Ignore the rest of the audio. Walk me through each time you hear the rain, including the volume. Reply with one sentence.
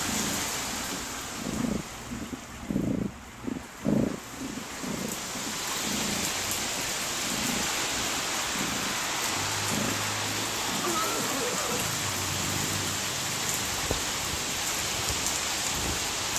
You can hear the rain from 0.0 to 16.3 s, getting louder.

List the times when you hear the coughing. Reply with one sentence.
The coughing can be heard from 10.8 to 11.9 s.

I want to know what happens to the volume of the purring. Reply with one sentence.
The volume of the purring goes down.